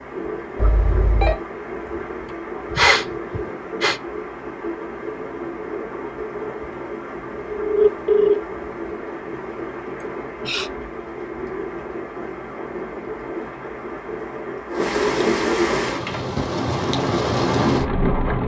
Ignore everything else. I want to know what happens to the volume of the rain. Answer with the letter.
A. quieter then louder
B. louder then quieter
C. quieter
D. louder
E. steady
D.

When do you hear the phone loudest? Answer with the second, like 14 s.
8 s.